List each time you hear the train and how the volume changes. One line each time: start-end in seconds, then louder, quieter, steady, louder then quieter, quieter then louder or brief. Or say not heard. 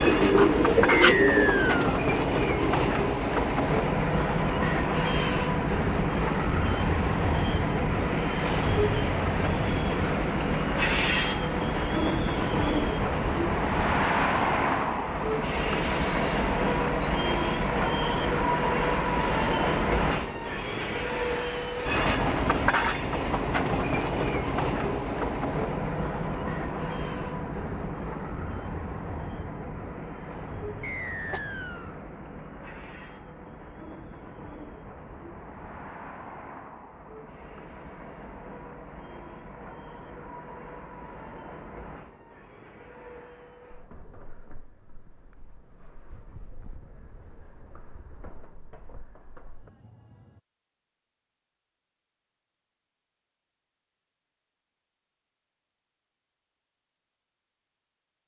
0.0-50.4 quieter.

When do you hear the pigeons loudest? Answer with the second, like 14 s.
1 s.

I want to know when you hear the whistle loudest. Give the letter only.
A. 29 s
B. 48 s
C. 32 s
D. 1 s
D.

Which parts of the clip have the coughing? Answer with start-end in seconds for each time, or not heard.
30.8-31.4.